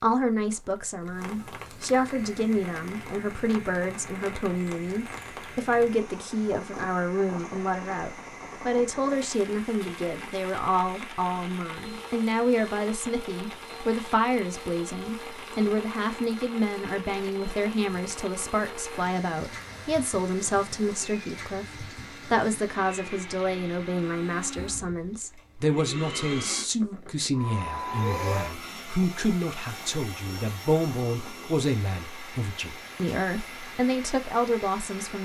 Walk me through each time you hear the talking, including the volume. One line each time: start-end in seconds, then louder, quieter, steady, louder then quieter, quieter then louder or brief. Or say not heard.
0.0-35.1 steady.